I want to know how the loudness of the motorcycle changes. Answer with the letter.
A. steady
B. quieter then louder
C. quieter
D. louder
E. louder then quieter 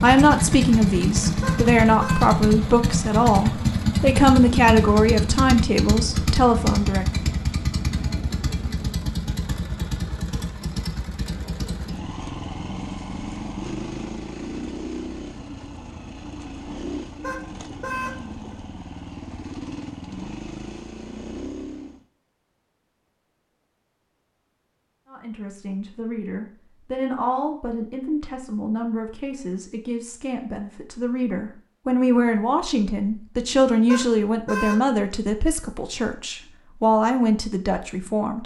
C.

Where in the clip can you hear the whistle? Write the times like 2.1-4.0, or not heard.
not heard.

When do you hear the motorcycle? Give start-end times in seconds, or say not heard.
0.0-22.1.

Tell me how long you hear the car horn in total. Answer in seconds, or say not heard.
3 s.